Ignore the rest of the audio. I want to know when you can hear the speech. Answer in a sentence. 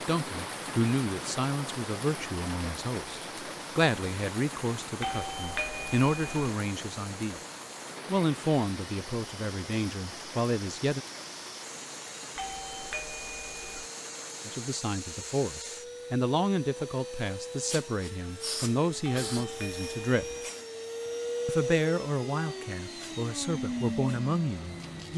The speech can be heard from 0.1 to 7.4 s, from 8.1 to 11.0 s, from 14.4 to 20.2 s and from 21.4 to 25.1 s.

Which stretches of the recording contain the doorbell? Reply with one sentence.
The doorbell can be heard from 5.0 to 6.5 s, from 12.3 to 13.9 s and from 19.0 to 20.5 s.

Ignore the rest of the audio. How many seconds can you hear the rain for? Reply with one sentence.
The rain can be heard for 15 seconds in total.